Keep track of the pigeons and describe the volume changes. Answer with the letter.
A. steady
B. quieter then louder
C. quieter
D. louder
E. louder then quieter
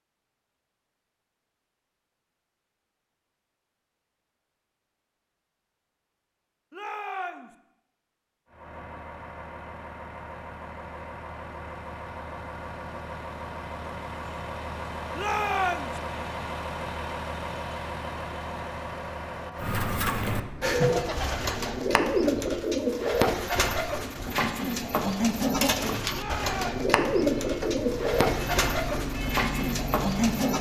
A.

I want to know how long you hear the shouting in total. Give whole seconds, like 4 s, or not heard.
2 s.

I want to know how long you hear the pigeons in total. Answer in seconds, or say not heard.
11 s.